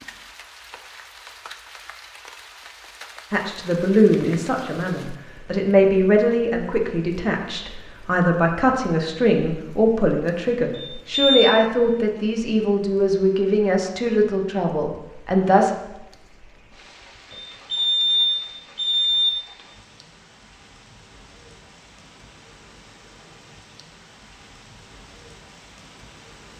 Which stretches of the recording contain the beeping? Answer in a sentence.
You can hear the beeping from 10.7 to 11.6 s and from 17.3 to 19.3 s.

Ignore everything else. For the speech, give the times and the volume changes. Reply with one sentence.
You can hear the speech from 3.3 to 15.7 s, at a steady volume.